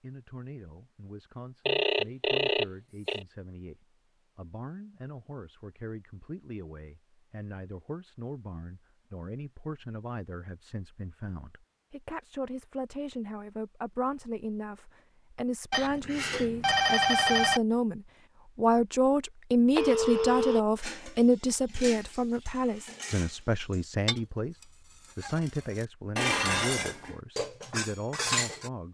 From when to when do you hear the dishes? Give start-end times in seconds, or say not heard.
20.8-28.7.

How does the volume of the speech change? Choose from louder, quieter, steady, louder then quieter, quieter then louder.
louder then quieter.